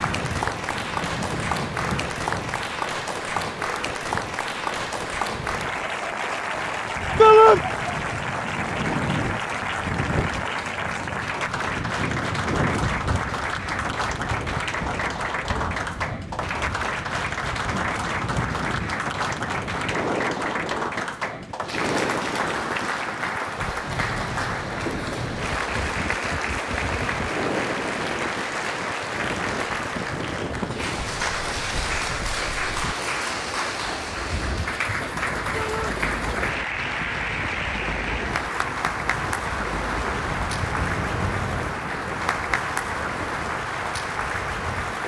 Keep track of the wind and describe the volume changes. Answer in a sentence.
The volume of the wind stays about the same.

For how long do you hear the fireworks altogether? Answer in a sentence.
You can't hear the fireworks here.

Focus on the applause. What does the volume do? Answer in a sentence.
The loudness of the applause stays about the same.